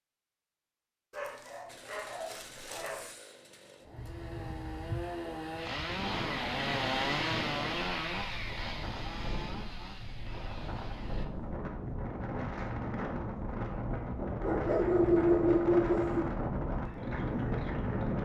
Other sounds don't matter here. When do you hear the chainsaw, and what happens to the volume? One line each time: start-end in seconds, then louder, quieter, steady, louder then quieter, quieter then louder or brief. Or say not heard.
1.6-11.2 louder then quieter.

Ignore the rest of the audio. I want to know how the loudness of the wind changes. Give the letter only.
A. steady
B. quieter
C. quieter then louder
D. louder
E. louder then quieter
D.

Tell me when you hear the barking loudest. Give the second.
15 s.